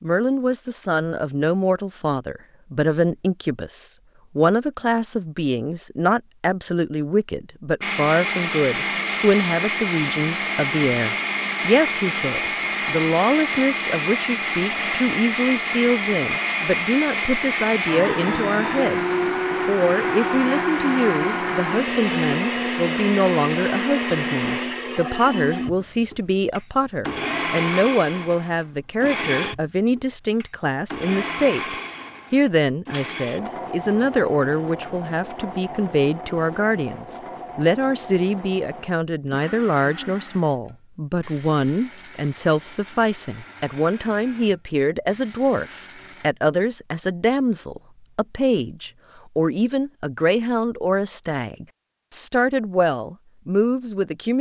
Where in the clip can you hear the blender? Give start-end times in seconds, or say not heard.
7.8-46.3.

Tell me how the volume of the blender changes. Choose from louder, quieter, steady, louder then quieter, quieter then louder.
quieter.